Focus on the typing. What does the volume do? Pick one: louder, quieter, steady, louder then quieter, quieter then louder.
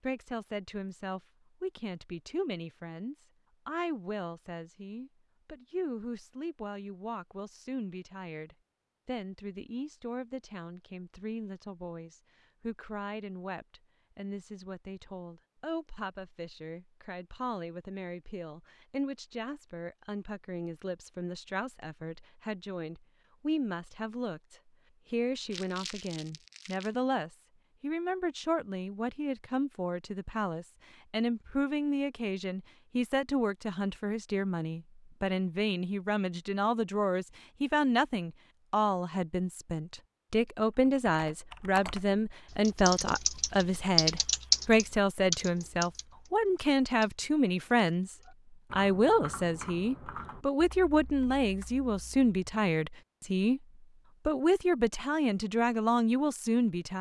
louder then quieter.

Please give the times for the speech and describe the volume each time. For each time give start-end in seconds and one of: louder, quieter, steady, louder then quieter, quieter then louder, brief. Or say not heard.
0.0-53.6 louder
54.2-56.9 brief.